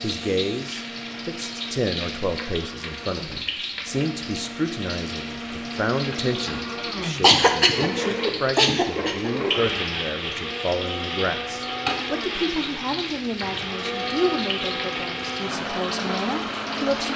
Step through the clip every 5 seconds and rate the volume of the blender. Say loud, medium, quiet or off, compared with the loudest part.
medium, loud, loud, loud.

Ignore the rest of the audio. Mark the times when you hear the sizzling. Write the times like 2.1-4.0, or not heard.
0.0-17.1.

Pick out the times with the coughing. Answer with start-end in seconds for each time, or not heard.
6.8-9.3.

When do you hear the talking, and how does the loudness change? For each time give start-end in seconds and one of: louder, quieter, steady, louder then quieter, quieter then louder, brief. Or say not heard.
0.0-17.1 steady.